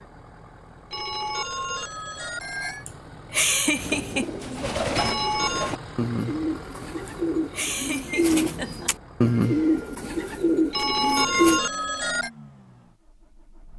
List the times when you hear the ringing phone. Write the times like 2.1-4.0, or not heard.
0.9-2.9, 5.0-5.8, 10.7-12.3.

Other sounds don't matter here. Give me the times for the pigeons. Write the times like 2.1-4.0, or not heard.
3.8-11.6.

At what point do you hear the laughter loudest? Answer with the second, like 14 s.
4 s.